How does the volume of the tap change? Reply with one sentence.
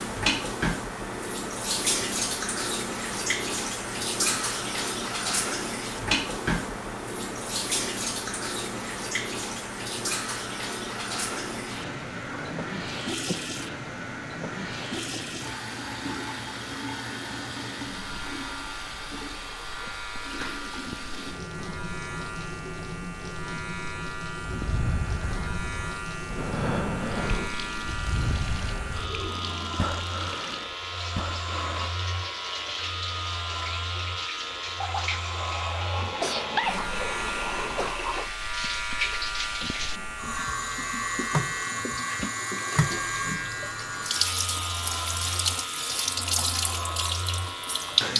The volume of the tap goes down, then up.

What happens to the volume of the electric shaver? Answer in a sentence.
The loudness of the electric shaver goes up.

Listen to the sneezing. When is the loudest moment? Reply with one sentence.
The loudest moment of the sneezing is at 37 seconds.